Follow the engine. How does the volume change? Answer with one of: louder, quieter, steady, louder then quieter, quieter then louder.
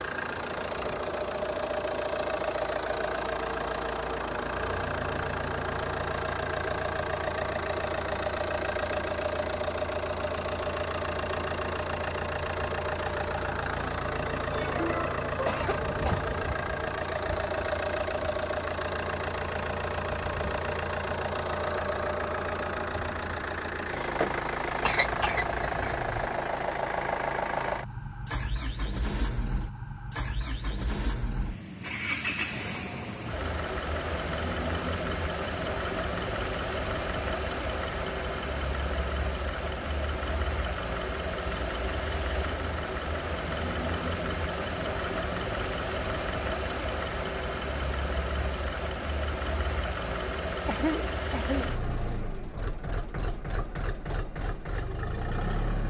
steady.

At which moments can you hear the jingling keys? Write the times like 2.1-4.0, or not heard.
not heard.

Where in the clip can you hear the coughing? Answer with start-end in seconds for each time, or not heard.
14.5-16.3, 24.9-26.1, 50.6-51.8.